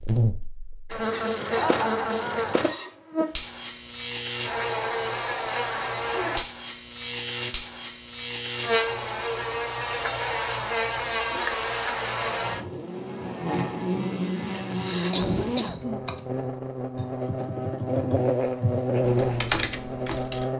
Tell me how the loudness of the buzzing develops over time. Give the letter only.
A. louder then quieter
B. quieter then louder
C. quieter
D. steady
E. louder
D.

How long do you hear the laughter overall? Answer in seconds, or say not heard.
2 s.